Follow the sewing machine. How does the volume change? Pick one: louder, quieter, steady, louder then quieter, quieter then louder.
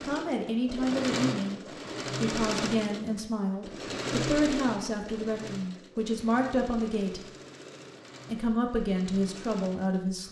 quieter.